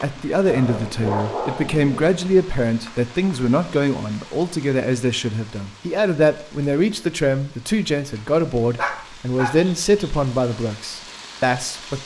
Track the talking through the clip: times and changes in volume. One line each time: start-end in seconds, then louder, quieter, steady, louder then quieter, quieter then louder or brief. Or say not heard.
0.0-12.0 steady.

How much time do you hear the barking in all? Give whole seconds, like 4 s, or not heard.
3 s.